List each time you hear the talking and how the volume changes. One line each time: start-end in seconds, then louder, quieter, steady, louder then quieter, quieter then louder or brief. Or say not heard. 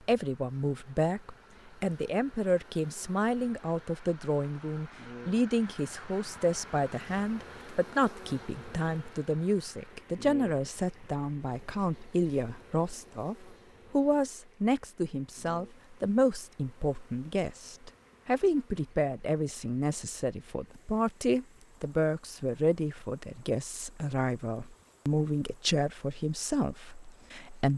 0.1-27.7 steady.